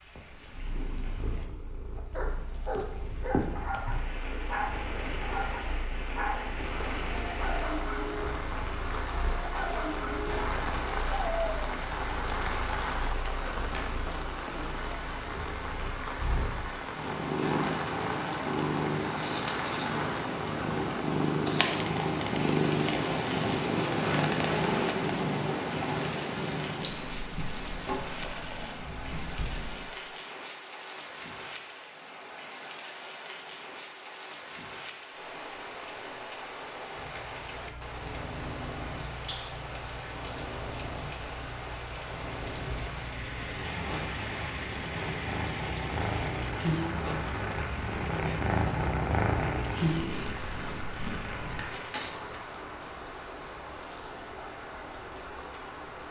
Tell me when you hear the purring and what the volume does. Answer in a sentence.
You can hear the purring from 0.1 to 29.9 s, getting louder; and from 36.9 to 51.6 s, getting louder.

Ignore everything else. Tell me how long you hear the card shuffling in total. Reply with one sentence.
You can hear the card shuffling for 3 seconds altogether.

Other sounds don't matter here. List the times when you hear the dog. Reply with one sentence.
You can hear the dog from 1.9 to 11.9 s.